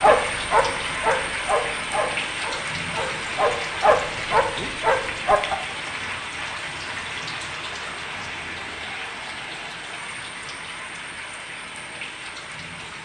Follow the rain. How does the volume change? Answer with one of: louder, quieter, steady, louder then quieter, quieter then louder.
quieter.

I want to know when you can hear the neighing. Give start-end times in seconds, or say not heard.
not heard.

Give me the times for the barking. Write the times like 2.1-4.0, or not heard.
0.0-5.5.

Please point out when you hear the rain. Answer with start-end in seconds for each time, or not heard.
0.0-12.9.